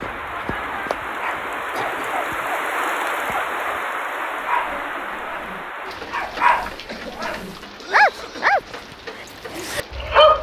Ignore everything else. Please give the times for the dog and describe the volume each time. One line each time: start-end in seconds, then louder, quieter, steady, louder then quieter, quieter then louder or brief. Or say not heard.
0.0-8.6 louder
9.2-10.3 brief.